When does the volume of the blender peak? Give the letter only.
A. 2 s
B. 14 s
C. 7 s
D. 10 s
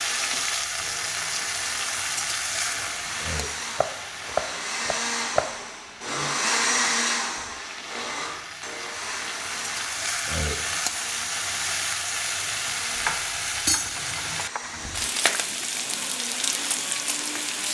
C.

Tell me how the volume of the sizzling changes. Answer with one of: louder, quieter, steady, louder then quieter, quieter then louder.
quieter then louder.